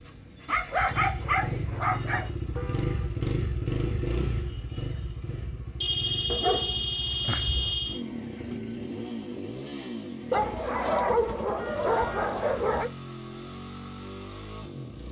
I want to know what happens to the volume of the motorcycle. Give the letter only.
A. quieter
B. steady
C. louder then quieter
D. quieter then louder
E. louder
A.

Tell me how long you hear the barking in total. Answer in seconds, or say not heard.
6 s.